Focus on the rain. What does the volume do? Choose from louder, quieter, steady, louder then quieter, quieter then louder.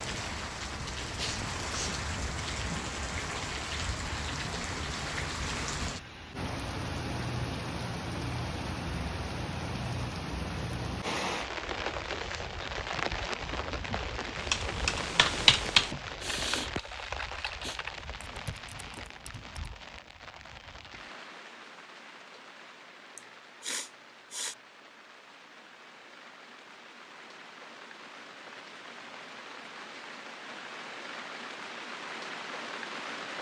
quieter then louder.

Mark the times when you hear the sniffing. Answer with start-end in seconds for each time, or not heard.
1.1-1.9, 15.7-17.8, 23.1-24.6.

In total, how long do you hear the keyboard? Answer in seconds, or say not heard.
5 s.